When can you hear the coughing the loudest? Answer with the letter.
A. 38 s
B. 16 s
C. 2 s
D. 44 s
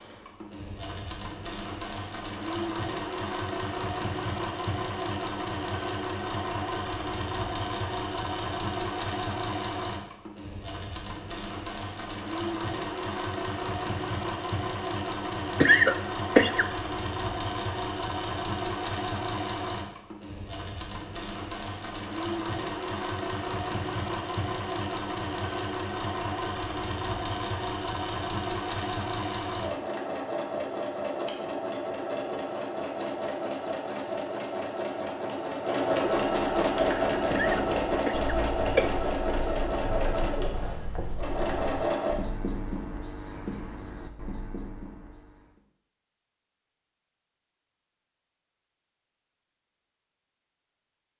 B.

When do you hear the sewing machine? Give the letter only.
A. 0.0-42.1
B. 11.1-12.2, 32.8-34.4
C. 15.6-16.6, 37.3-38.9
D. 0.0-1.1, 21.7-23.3
A.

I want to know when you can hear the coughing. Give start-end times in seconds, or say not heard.
15.6-16.6, 37.3-38.9.